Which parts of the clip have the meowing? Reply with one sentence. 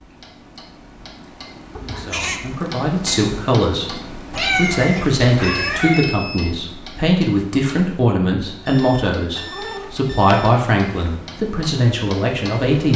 You can hear the meowing from 1.8 to 2.6 s, from 4.3 to 6.0 s and from 9.3 to 11.1 s.